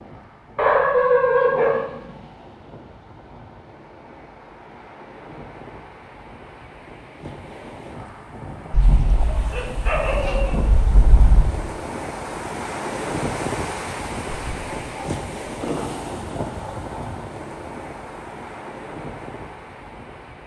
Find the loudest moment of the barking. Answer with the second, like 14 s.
1 s.